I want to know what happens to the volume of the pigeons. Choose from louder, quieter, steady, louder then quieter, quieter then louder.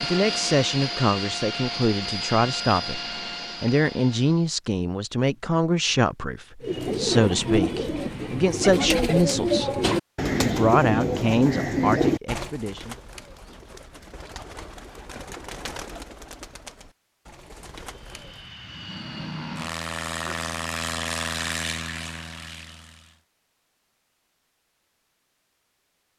quieter.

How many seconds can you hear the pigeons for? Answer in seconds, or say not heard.
12 s.